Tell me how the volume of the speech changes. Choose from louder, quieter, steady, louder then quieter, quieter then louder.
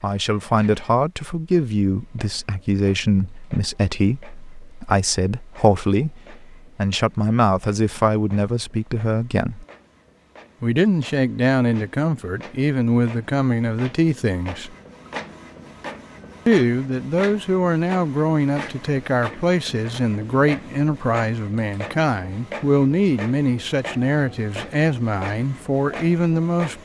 steady.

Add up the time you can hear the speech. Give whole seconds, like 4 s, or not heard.
24 s.